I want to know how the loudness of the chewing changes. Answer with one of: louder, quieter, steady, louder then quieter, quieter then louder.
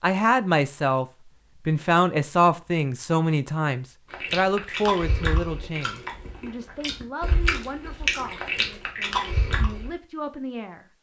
quieter then louder.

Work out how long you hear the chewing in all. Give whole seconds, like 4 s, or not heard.
6 s.